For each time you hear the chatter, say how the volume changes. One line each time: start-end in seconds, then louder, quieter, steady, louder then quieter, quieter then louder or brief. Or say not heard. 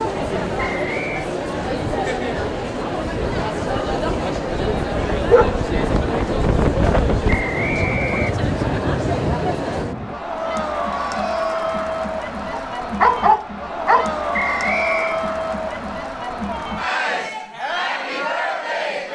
0.0-19.1 steady.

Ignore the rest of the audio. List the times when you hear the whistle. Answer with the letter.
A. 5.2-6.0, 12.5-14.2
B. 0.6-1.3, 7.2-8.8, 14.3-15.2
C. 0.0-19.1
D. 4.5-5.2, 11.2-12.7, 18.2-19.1
B.